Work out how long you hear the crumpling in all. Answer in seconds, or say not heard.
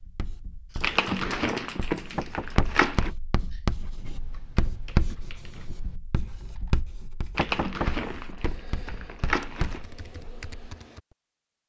5 s.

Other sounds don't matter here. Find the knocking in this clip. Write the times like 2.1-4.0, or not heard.
2.1-2.9, 7.3-8.1.